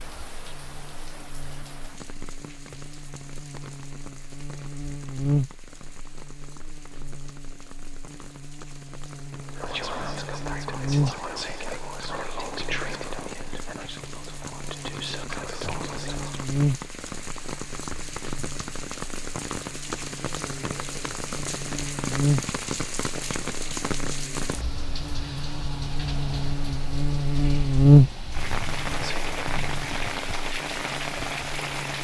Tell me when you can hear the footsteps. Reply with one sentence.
You can't hear the footsteps here.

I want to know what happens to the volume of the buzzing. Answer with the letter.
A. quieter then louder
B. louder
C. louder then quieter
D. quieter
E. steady
B.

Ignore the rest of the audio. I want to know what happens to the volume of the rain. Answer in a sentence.
The volume of the rain goes up.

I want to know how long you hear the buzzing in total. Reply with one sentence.
You can hear the buzzing for 32 seconds altogether.